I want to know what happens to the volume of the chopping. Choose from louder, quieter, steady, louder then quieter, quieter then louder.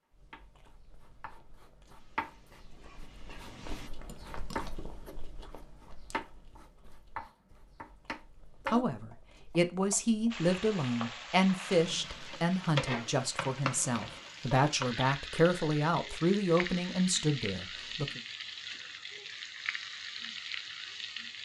quieter then louder.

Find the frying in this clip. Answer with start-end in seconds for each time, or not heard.
1.9-3.9, 10.3-21.3.